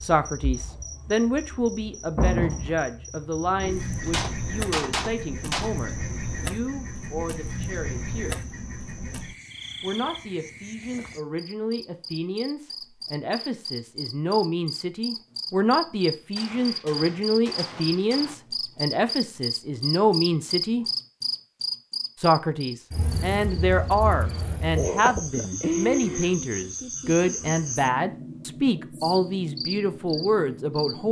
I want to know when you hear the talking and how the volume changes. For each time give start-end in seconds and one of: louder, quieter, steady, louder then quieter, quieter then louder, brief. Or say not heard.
0.0-8.4 quieter
9.8-20.9 louder
22.1-31.0 steady.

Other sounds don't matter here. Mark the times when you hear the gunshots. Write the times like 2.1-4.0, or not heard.
4.0-5.7, 16.4-18.4.